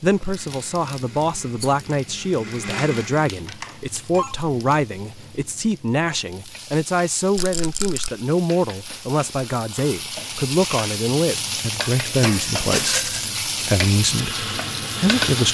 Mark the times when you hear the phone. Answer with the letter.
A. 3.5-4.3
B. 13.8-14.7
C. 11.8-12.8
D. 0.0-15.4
A.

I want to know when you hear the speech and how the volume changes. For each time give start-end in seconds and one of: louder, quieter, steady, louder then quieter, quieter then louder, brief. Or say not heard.
0.0-15.4 steady.